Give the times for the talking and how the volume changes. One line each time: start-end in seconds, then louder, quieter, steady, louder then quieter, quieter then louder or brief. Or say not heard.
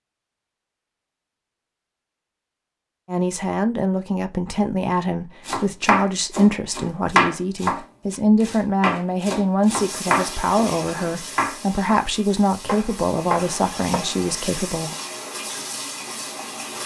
3.0-14.9 steady.